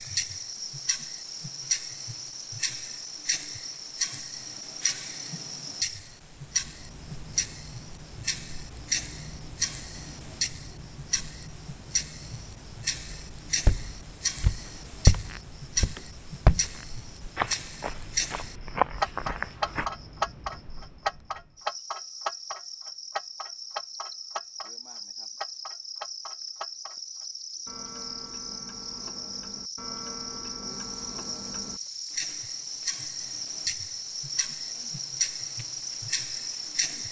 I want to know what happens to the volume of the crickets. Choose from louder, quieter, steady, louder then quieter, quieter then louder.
quieter then louder.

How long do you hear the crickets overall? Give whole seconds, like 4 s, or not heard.
37 s.